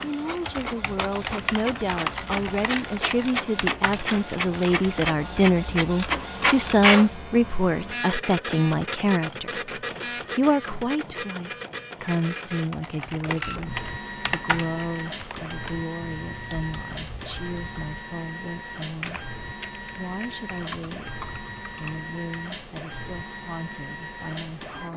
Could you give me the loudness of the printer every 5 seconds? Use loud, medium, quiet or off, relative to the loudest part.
medium, loud, medium, medium, medium.